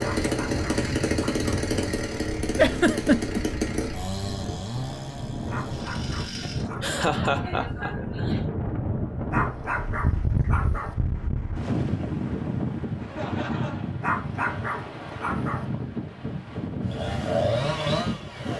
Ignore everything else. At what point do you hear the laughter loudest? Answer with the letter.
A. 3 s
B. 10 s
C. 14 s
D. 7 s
A.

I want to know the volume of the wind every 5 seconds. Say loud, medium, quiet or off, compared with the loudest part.
medium, loud, loud, loud.